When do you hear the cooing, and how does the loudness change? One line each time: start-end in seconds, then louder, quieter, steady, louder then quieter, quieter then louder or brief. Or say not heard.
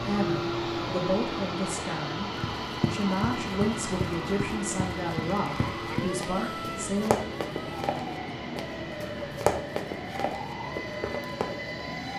not heard.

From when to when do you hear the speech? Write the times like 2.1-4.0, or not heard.
0.1-7.2.